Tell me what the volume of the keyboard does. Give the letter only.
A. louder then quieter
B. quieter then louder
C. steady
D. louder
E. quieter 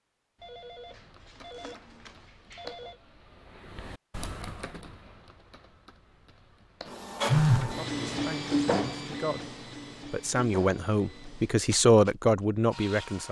A.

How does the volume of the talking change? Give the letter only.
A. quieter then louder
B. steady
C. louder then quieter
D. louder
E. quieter
D.